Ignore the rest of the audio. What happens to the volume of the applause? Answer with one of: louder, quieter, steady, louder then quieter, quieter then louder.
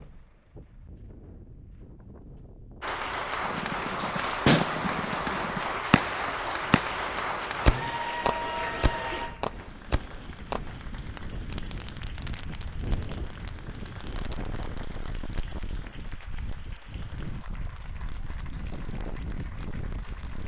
quieter.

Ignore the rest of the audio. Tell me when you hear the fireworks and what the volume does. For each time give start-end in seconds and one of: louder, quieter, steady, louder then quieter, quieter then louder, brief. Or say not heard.
3.5-15.4 quieter.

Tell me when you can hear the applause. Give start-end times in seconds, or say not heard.
2.8-20.4.